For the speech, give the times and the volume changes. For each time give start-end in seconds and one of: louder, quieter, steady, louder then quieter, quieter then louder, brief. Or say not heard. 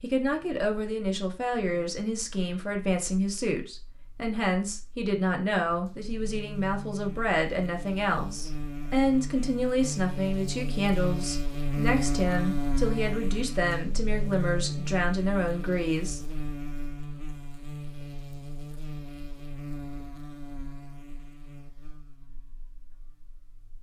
0.0-16.2 steady.